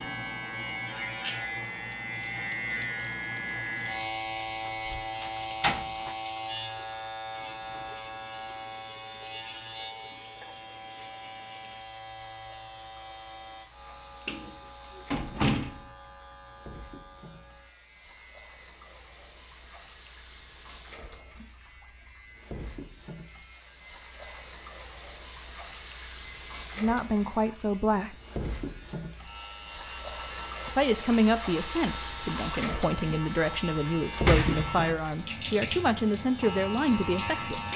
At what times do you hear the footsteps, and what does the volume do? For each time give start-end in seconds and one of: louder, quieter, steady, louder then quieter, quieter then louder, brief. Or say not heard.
not heard.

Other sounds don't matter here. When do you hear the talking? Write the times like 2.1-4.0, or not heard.
26.8-28.1, 30.6-37.6.